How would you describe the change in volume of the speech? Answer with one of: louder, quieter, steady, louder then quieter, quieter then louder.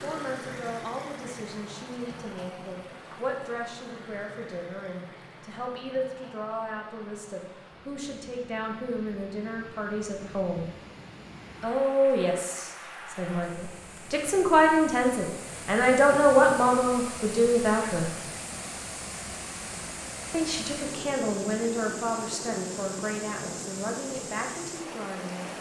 louder then quieter.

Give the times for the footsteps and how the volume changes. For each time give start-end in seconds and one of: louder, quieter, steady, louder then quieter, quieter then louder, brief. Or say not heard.
not heard.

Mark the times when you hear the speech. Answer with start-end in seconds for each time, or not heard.
0.0-10.7, 11.6-18.1, 20.3-25.5.